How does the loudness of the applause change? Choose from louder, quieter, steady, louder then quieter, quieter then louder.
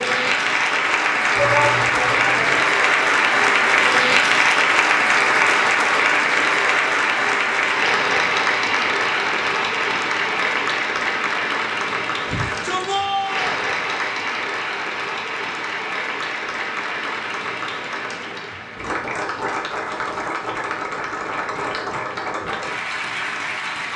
quieter.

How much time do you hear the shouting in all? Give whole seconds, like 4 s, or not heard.
3 s.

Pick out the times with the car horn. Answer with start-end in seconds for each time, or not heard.
not heard.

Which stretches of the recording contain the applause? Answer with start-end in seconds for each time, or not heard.
0.0-23.9.